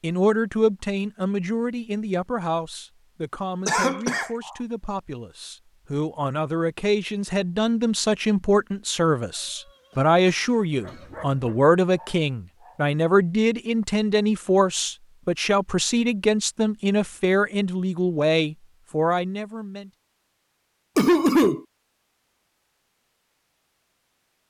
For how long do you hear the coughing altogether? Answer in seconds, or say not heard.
3 s.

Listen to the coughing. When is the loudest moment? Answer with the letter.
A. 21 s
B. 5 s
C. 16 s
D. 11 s
A.